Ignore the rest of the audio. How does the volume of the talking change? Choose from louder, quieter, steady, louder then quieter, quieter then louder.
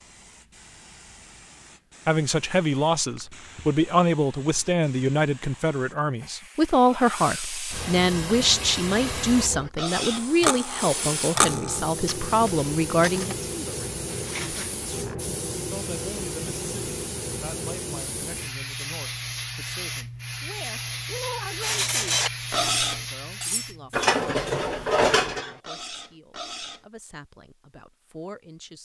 quieter.